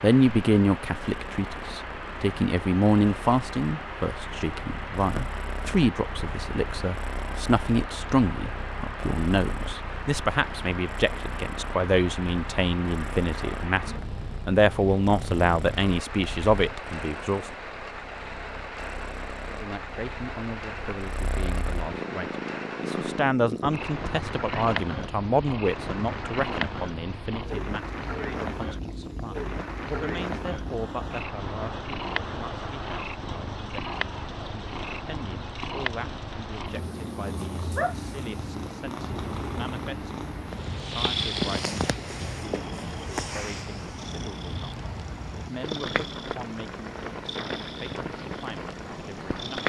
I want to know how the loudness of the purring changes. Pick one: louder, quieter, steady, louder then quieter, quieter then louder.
louder.